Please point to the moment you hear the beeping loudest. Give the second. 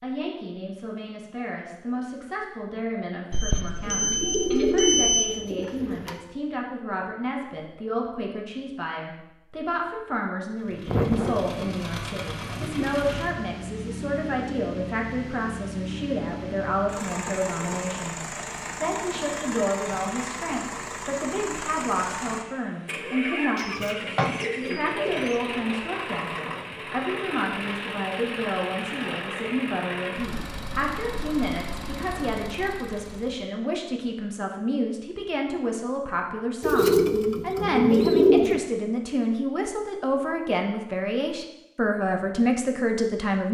5 s.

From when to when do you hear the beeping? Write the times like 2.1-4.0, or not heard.
3.3-5.3.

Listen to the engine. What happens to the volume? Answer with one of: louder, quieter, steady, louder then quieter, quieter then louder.
steady.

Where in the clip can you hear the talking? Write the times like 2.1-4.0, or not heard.
0.0-43.4.